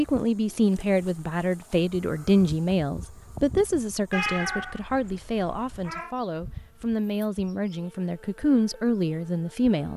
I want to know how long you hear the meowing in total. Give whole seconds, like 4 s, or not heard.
2 s.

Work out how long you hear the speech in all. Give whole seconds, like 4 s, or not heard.
10 s.